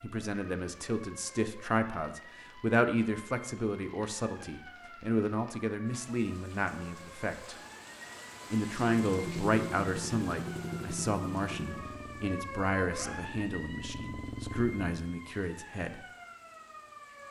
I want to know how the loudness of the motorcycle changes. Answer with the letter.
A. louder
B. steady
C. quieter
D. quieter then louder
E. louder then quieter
D.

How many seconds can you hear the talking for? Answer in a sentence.
You can hear the talking for 15 seconds altogether.